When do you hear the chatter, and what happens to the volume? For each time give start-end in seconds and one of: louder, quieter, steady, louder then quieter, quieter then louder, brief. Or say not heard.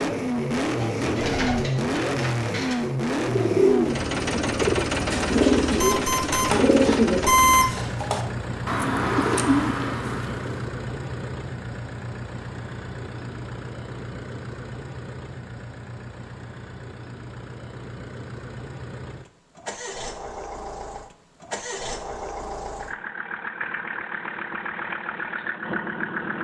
not heard.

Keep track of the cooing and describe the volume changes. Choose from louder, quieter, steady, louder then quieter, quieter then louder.
louder.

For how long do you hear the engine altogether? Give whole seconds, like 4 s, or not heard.
26 s.